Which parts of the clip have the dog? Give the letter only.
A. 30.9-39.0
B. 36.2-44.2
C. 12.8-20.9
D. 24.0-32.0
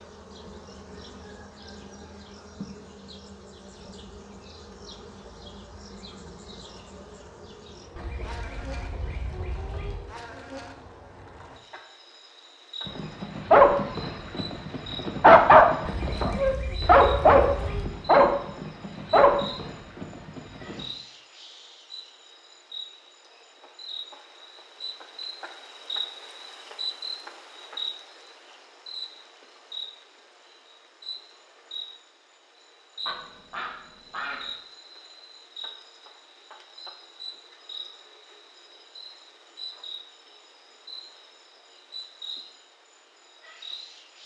C.